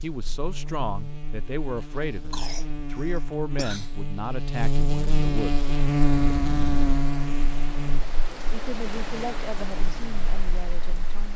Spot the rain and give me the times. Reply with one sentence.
You can hear the rain from 5.6 to 11.3 s.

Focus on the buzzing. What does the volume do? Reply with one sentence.
The volume of the buzzing goes up, then down.